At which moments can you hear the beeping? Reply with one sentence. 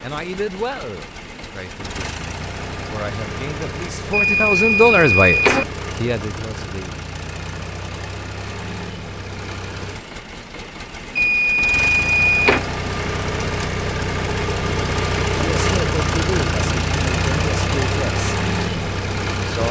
You can hear the beeping from 4.1 to 5.7 s and from 11.2 to 12.6 s.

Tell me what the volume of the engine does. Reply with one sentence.
The loudness of the engine goes up.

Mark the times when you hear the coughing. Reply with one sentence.
The coughing can't be heard in this clip.